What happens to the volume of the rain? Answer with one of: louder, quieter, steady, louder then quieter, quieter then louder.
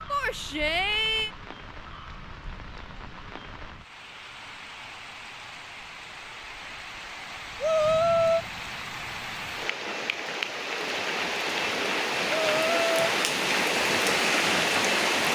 louder.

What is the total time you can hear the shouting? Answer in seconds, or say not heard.
3 s.